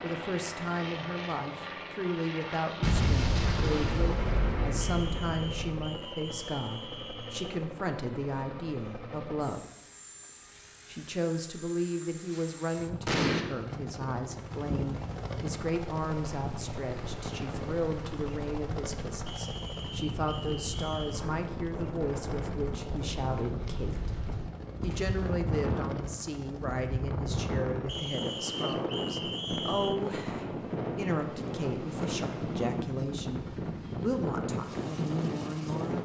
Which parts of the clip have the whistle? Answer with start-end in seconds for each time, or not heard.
4.8-7.5, 19.2-21.2, 27.9-30.0.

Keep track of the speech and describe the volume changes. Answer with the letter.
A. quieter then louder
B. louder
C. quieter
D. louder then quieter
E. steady
E.